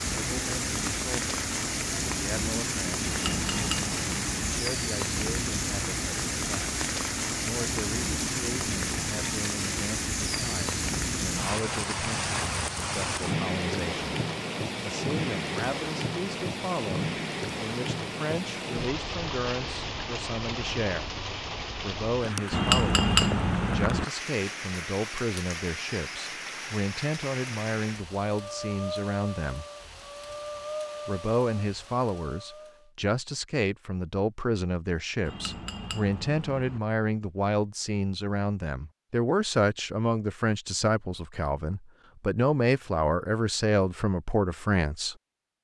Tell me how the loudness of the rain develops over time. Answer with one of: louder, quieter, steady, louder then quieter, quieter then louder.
quieter.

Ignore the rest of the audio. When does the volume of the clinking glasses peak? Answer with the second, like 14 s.
23 s.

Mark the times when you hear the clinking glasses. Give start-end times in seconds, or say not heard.
3.0-4.6, 22.5-24.1, 35.2-36.8.